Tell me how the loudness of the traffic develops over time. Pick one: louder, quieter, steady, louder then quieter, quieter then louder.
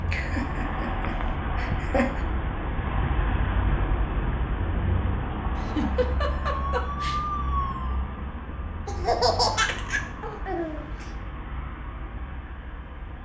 quieter.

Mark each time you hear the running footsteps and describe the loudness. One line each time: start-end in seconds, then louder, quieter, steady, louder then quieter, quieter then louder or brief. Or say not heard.
not heard.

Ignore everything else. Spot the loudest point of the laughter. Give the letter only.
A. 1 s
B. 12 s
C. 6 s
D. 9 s
D.